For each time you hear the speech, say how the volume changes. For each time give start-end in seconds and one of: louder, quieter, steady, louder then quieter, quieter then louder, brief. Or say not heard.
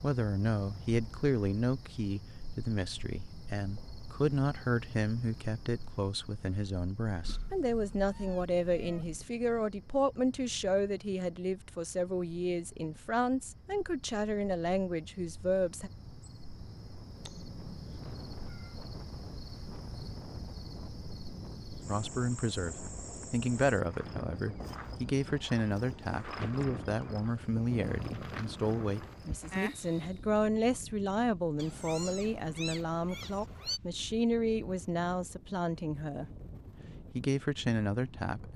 0.0-15.9 steady
21.9-36.2 steady
37.0-38.5 brief.